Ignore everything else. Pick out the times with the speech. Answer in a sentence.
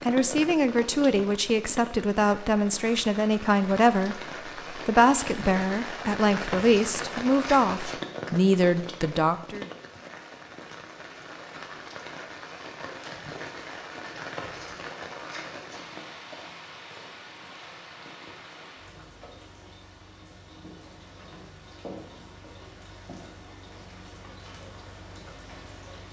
You can hear the speech from 0.0 to 9.7 s.